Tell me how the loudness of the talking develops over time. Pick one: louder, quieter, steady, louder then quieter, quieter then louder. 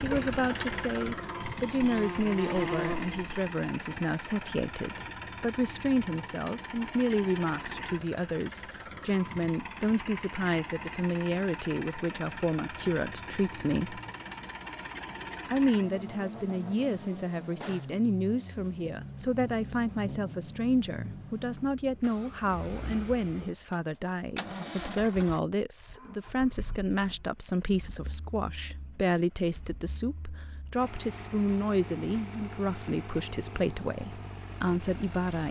steady.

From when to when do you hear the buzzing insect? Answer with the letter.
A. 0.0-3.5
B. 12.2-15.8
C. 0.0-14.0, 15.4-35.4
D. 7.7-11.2
A.